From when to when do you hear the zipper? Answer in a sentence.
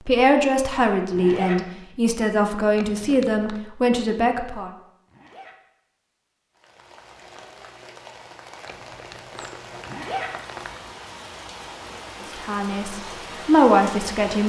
You can hear the zipper from 1.1 to 1.6 s, from 5.0 to 5.5 s and from 9.8 to 10.3 s.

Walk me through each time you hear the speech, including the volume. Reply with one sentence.
You can hear the speech from 0.0 to 4.7 s, at a steady volume; and briefly from 12.4 to 14.4 s.